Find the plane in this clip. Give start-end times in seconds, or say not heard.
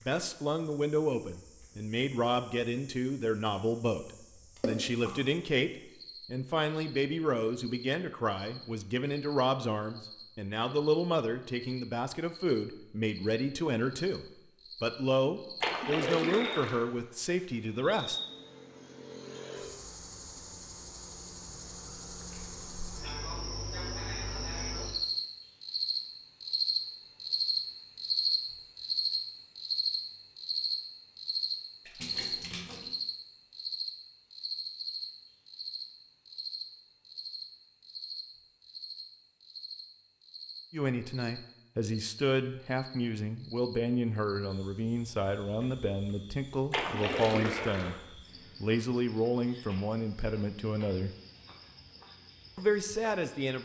not heard.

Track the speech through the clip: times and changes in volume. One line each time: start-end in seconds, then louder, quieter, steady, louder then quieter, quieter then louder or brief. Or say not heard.
0.1-18.2 steady
40.7-48.0 steady
48.6-51.1 brief
52.5-53.6 brief.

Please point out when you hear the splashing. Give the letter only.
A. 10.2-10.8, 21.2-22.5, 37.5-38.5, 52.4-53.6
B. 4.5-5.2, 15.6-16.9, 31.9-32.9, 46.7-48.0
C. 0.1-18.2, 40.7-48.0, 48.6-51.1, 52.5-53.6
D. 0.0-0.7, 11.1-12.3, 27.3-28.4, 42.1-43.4
B.